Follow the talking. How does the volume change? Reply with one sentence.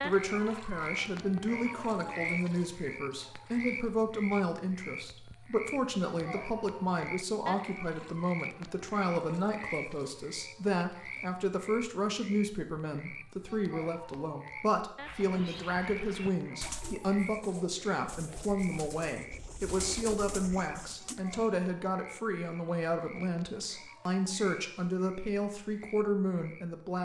The loudness of the talking stays about the same.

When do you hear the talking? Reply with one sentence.
The talking can be heard from 0.0 to 27.0 s.